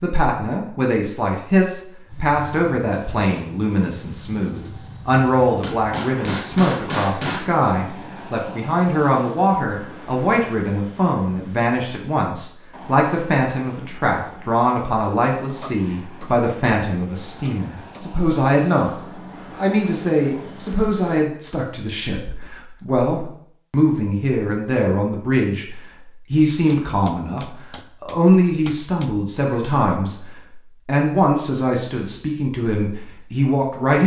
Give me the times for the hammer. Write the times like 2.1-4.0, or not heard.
5.6-7.5, 15.6-16.8, 17.4-18.0, 26.4-29.1.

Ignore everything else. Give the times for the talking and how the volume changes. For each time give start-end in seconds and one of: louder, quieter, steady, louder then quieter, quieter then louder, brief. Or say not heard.
0.0-34.0 steady.